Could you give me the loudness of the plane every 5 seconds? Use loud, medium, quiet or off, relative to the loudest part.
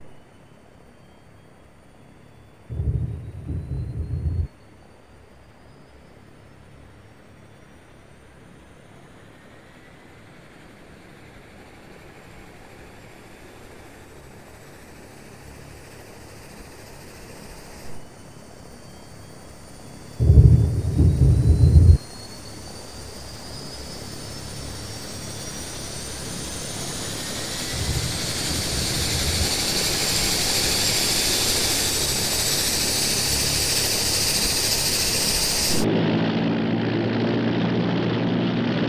quiet, quiet, quiet, quiet, quiet, medium, loud, loud.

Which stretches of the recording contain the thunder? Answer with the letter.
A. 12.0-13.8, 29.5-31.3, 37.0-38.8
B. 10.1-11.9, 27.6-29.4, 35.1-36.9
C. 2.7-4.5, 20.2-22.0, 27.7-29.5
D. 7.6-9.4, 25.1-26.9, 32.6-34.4
C.